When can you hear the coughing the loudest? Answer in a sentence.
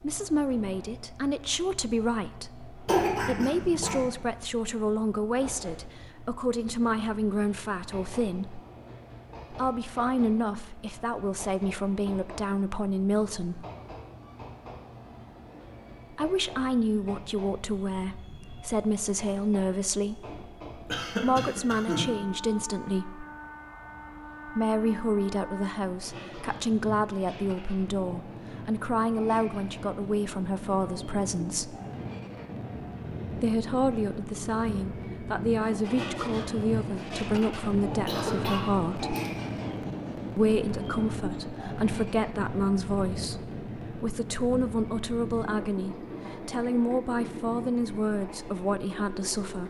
The volume of the coughing peaks at 3 seconds.